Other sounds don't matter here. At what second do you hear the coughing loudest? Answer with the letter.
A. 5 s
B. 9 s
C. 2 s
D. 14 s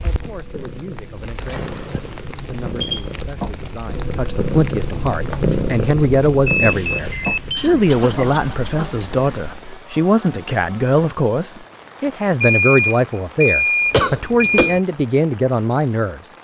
D.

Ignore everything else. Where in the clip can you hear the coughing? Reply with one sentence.
You can hear the coughing from 1.4 to 2.2 s, from 7.5 to 8.9 s and from 13.9 to 14.8 s.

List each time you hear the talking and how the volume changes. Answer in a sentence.
You can hear the talking from 0.0 to 16.3 s, getting louder.